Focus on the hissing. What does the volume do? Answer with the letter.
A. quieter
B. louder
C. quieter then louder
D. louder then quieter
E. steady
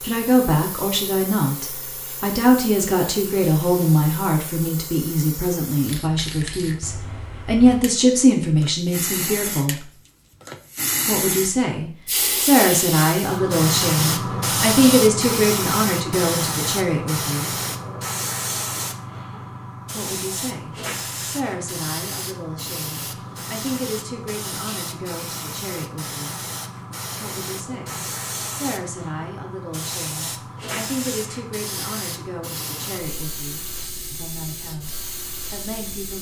D.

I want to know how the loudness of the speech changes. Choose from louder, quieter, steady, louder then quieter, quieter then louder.
quieter.